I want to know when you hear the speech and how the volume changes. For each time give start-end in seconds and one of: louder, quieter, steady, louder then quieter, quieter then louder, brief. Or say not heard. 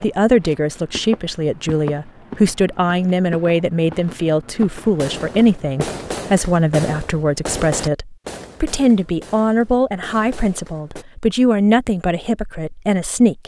0.0-13.4 steady.